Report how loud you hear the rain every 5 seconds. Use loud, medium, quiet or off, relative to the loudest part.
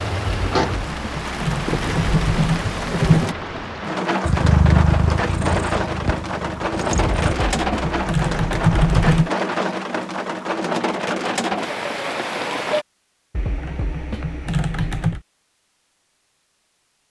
loud, loud, loud, off.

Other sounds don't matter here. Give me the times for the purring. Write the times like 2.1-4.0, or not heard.
4.2-7.3.